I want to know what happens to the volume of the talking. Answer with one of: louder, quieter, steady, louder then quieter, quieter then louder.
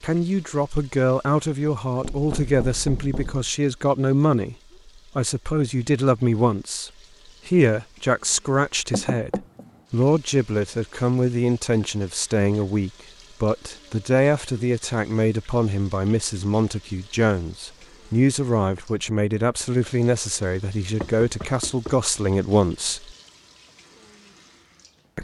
steady.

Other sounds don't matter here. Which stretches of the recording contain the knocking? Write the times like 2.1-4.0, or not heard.
2.0-3.5, 8.9-9.8, 21.0-21.9.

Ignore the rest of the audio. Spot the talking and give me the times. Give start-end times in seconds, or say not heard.
0.0-4.5, 5.2-23.1.